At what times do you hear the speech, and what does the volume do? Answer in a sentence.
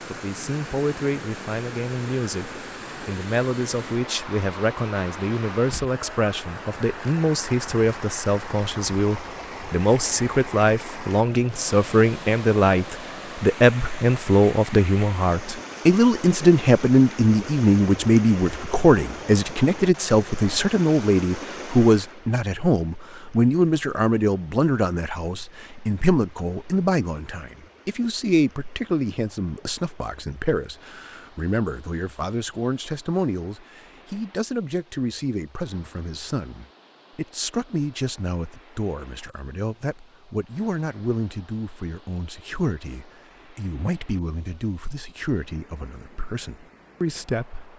The speech can be heard from 0.1 to 47.7 s, getting louder then quieter.